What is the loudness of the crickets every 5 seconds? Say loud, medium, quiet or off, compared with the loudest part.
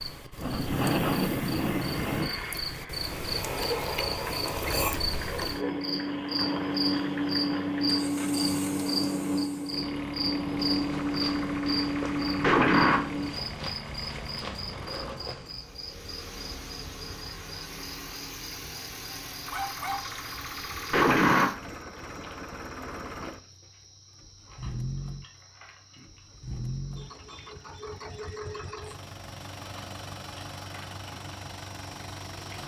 loud, loud, loud, quiet, quiet, quiet, quiet.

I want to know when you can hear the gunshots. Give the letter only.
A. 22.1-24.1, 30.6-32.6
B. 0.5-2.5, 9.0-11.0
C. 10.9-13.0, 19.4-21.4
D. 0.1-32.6
C.